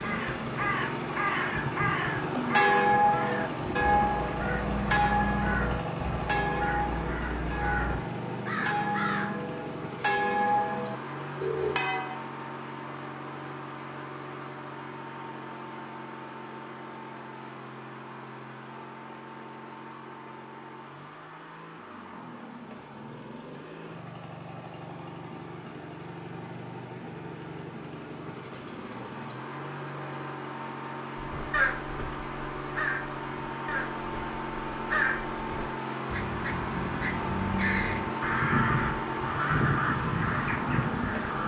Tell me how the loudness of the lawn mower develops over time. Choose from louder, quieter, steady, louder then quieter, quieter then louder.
quieter then louder.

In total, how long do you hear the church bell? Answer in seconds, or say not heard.
10 s.